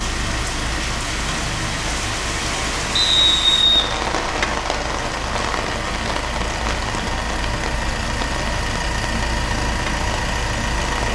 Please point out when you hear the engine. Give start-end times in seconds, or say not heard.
0.0-11.0.